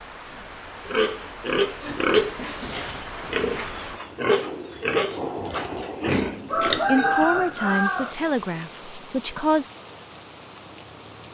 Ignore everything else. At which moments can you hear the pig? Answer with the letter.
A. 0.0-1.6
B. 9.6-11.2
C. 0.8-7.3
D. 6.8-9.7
C.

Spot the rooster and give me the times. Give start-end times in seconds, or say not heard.
6.5-8.2.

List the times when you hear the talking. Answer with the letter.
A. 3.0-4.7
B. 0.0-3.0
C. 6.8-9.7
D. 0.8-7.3
C.